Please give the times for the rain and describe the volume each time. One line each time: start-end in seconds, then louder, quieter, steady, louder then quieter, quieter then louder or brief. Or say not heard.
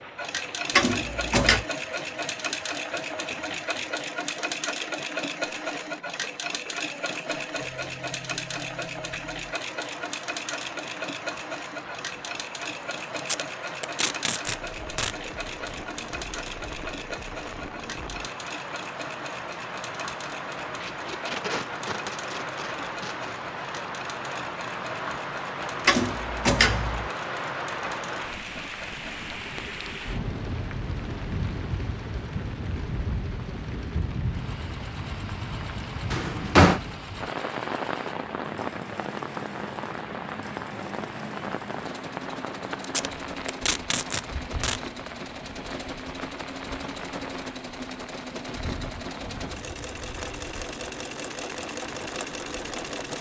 0.0-53.0 louder then quieter.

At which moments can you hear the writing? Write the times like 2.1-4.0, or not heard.
not heard.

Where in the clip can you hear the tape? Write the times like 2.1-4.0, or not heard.
13.2-15.2, 20.8-23.3, 42.8-44.8.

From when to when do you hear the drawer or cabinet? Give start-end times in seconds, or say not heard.
0.8-1.6, 25.9-27.1, 36.1-36.8.